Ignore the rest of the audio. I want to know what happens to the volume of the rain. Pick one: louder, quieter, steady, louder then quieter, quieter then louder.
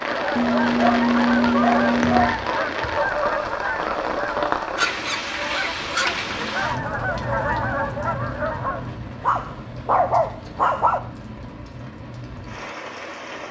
quieter.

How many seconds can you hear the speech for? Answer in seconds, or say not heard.
not heard.